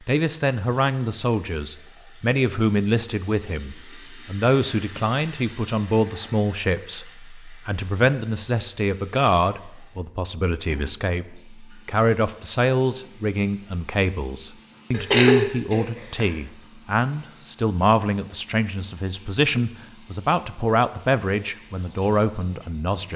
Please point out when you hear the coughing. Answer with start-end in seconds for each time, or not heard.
14.9-16.2.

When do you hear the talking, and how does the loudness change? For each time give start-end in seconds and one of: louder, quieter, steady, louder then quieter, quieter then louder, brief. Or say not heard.
0.1-23.1 steady.